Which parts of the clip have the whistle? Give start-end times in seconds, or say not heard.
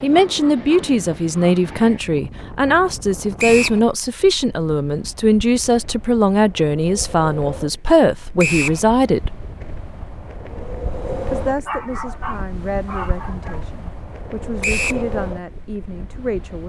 3.4-3.8, 8.3-8.8, 14.6-15.1.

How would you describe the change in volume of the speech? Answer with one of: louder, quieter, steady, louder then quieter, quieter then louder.
quieter.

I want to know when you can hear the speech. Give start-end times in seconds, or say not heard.
0.0-9.3, 11.3-16.6.